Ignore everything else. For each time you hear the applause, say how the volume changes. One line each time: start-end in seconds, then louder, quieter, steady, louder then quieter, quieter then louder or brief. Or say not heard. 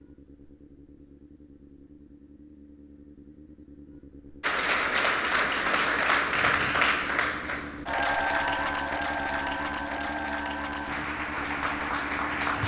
4.4-12.6 quieter.